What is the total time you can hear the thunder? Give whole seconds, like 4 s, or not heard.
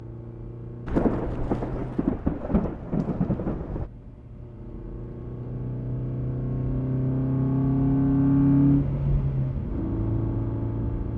3 s.